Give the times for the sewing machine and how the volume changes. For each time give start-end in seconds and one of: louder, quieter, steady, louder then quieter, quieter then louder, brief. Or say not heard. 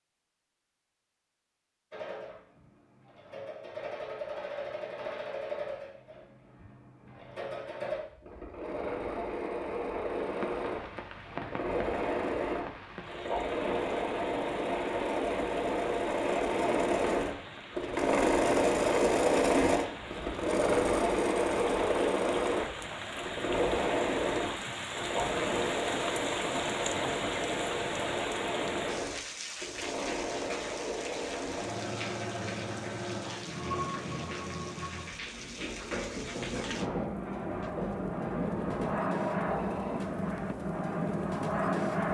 1.9-40.0 louder then quieter.